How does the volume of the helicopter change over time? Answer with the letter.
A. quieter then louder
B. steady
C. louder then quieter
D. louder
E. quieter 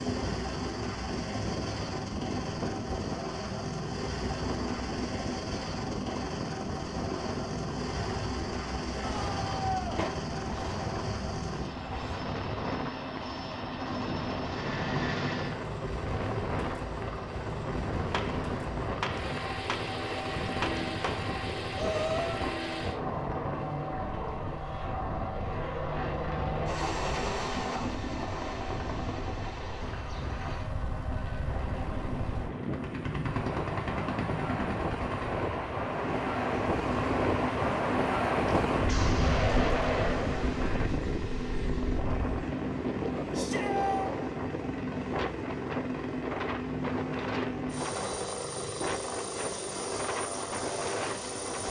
B.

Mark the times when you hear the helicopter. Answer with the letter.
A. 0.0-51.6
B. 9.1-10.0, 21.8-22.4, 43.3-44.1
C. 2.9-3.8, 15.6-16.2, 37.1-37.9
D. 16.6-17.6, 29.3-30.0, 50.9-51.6
A.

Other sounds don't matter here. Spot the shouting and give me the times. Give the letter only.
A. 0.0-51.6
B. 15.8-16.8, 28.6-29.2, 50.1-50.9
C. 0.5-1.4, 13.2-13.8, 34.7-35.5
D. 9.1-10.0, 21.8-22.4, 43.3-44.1
D.